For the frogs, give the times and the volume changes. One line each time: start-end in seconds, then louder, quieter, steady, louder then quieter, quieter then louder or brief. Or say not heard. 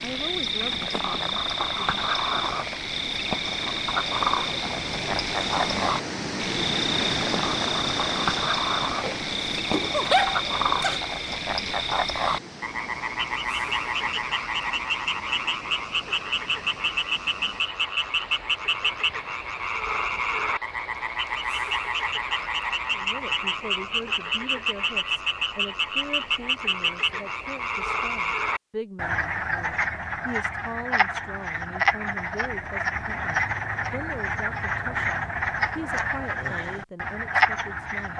0.0-38.1 steady.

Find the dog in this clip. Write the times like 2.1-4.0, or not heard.
9.0-11.0.